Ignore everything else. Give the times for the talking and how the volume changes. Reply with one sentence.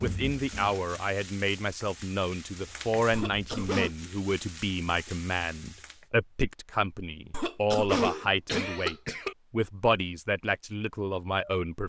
You can hear the talking from 0.0 to 11.8 s, at a steady volume.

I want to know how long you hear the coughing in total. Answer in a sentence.
The coughing can be heard for 3 seconds in total.